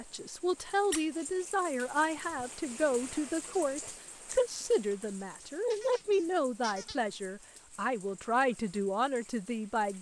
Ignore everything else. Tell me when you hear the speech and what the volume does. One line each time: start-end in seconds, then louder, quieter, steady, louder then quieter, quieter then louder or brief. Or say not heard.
0.0-9.9 steady.